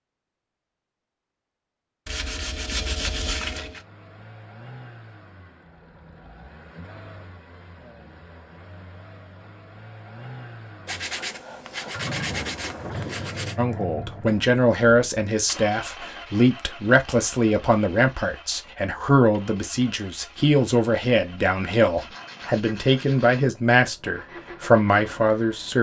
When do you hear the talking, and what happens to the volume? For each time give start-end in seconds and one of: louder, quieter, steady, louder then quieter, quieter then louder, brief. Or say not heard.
13.6-25.7 steady.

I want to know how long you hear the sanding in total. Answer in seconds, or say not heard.
6 s.